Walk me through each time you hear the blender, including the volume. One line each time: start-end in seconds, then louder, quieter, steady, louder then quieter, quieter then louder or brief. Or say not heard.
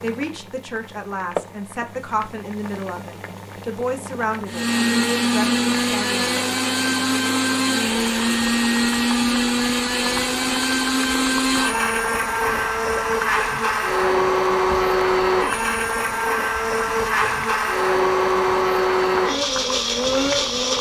4.5-20.7 steady.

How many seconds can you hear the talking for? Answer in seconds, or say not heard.
6 s.